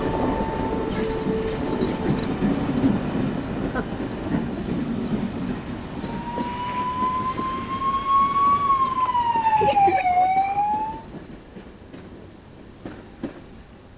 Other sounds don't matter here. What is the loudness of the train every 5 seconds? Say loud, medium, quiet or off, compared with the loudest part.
loud, medium, quiet.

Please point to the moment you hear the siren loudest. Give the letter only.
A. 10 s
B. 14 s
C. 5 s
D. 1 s
A.